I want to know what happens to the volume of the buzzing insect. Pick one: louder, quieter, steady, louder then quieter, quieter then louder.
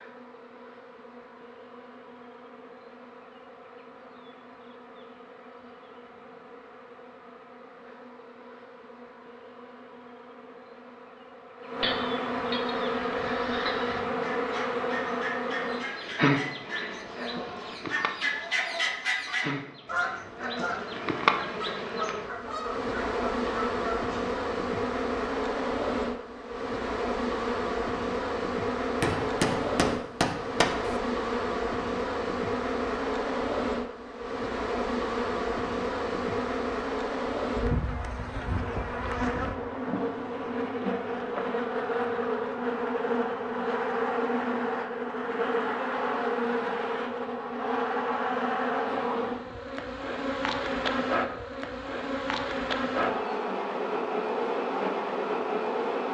louder.